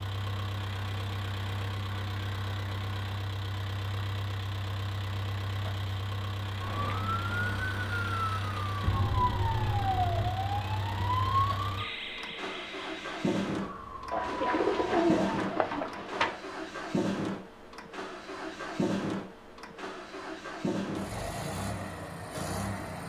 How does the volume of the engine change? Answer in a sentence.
The volume of the engine stays about the same.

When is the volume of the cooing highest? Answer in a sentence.
The volume of the cooing peaks at 15 seconds.